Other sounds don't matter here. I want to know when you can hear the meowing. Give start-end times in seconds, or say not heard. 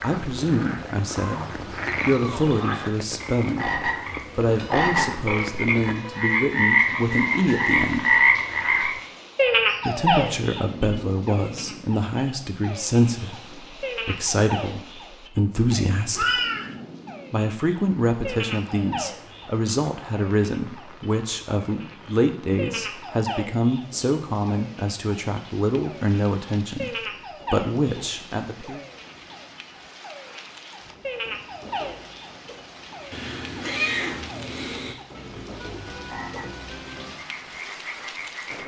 1.2-2.5, 15.6-16.7, 33.1-35.0.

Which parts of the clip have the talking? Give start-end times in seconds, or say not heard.
0.0-8.2, 9.8-16.4, 17.3-28.8.